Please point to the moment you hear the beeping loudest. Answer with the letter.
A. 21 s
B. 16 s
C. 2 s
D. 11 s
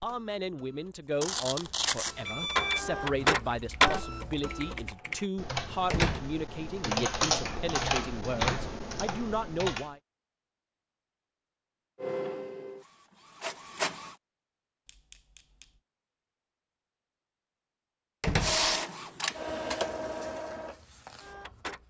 C.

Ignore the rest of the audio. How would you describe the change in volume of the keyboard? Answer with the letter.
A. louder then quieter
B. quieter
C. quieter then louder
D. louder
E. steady
D.